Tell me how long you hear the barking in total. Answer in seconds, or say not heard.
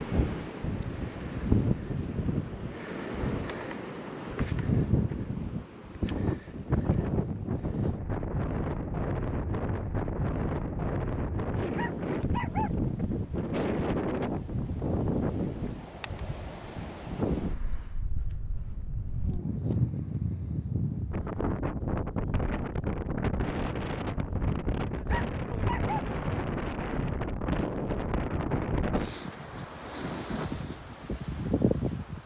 2 s.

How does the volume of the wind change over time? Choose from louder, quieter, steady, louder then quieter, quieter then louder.
steady.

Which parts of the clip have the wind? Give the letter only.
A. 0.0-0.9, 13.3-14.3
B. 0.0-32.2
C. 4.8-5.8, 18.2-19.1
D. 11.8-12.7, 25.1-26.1
B.